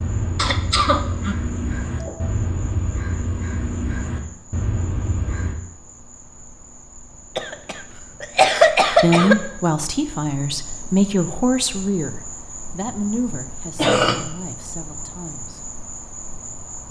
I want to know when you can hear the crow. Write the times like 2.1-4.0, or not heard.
0.0-5.5.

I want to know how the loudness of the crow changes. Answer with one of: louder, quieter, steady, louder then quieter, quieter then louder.
steady.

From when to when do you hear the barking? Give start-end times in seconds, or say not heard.
not heard.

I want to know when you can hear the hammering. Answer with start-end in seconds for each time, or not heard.
not heard.